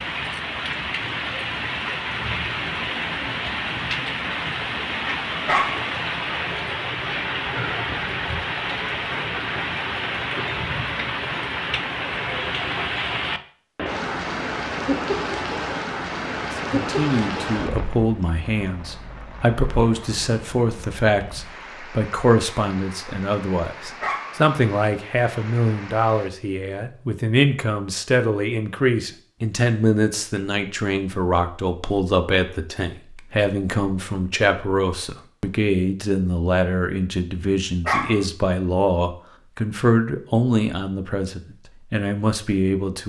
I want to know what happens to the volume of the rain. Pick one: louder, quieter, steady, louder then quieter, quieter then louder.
quieter.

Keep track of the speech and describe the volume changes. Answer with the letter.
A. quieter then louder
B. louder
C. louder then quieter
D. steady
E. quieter
D.